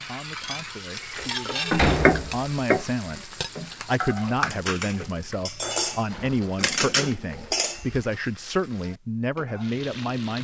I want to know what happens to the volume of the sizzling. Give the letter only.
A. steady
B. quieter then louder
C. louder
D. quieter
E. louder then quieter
D.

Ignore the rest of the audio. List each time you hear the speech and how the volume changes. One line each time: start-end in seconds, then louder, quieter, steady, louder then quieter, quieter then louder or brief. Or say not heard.
0.1-10.4 louder.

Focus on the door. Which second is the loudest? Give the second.
2 s.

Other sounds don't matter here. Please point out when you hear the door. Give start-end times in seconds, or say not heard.
1.0-2.5, 5.7-6.6.